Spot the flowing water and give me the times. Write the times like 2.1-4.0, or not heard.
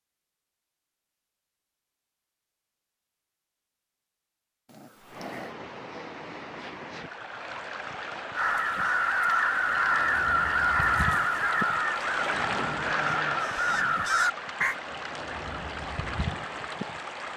5.0-17.3.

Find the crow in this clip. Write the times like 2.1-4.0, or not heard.
8.3-14.8.